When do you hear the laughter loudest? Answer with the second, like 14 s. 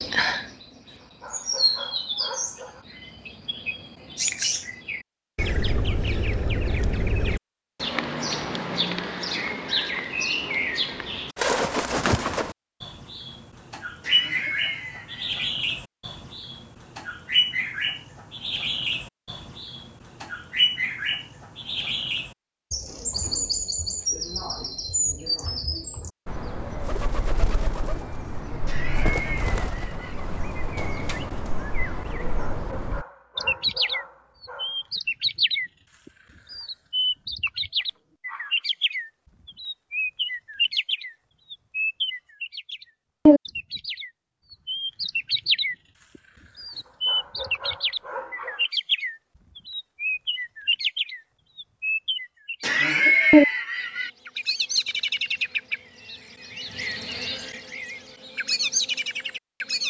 53 s.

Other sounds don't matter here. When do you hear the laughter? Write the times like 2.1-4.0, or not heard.
14.0-15.5, 28.6-30.1, 52.6-54.1.